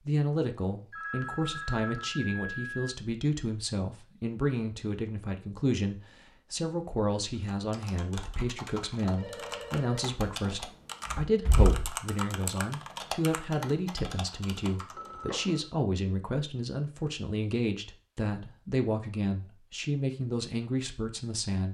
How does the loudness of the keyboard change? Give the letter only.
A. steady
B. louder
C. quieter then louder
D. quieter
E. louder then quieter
E.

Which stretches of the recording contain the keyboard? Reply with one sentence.
The keyboard can be heard from 7.5 to 15.1 s.